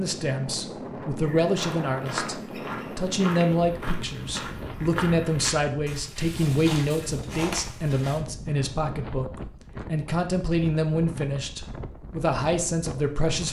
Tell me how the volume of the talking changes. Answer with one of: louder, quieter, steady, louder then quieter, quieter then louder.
steady.